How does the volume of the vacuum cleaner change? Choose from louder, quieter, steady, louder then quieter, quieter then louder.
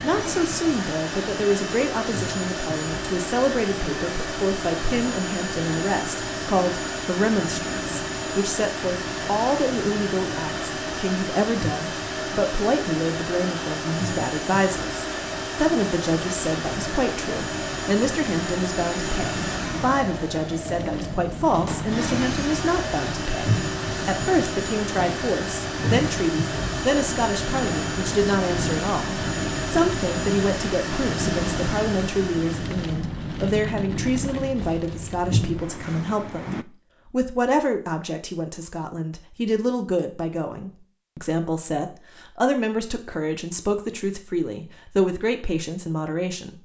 steady.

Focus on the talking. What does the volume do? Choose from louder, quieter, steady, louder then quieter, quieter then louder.
steady.